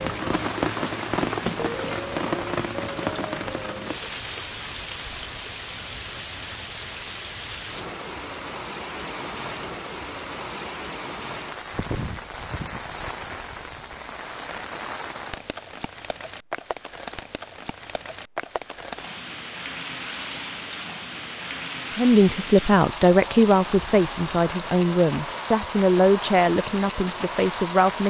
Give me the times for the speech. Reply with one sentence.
The speech can be heard from 21.9 to 28.0 s.